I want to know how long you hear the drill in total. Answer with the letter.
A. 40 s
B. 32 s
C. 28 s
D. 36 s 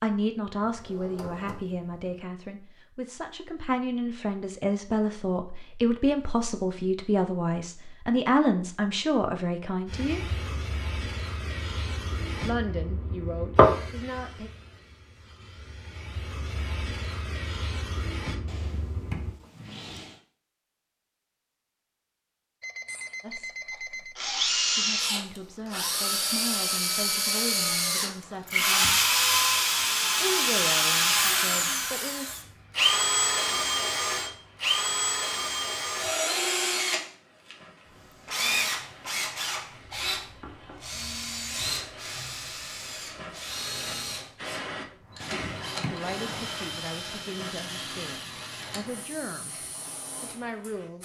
C.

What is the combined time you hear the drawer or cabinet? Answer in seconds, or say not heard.
5 s.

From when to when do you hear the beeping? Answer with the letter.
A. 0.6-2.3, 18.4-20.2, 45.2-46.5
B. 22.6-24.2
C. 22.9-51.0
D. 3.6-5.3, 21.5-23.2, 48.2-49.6
B.